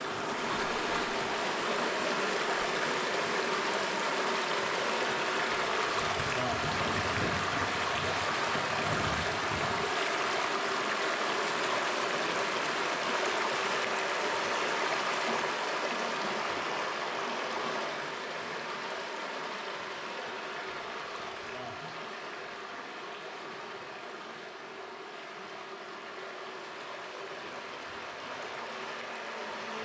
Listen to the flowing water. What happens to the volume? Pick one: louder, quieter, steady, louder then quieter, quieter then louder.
quieter.